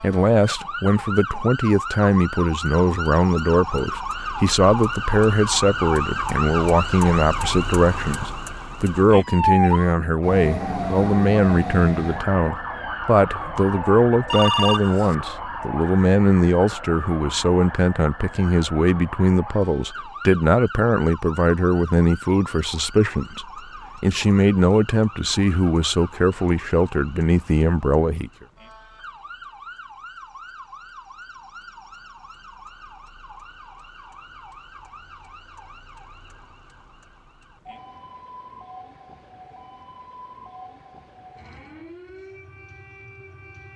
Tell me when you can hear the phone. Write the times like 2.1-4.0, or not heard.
14.3-15.2.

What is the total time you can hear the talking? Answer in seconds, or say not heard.
28 s.